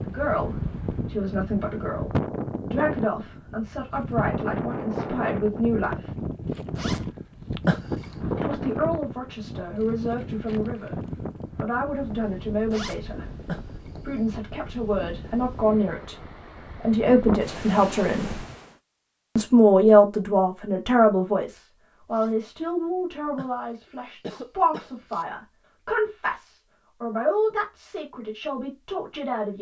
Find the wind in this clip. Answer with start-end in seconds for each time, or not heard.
0.0-18.8.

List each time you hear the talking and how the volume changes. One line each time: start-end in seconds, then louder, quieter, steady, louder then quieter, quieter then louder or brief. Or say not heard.
0.0-6.1 steady
8.3-13.2 steady
14.0-16.1 brief
16.8-18.4 brief
19.4-29.5 quieter.